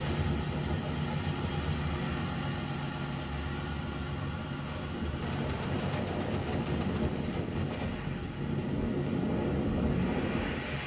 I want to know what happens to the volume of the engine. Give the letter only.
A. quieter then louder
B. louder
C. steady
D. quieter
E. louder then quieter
D.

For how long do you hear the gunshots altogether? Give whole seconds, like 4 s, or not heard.
2 s.